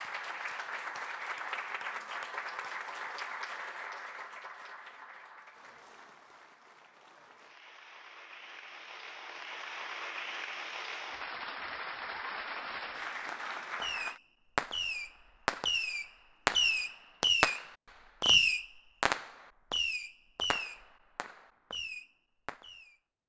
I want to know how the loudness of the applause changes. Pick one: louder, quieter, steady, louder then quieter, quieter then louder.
quieter then louder.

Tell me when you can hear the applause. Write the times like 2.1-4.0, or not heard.
0.0-14.2.